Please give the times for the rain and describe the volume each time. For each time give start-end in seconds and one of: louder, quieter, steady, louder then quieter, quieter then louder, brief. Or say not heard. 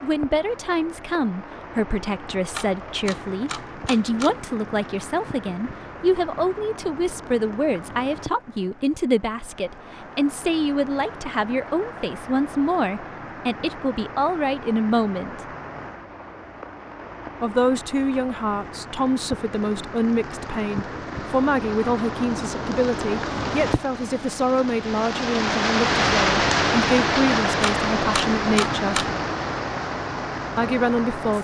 0.0-31.3 louder.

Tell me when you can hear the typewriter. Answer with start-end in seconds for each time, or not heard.
2.5-4.4, 27.6-29.1.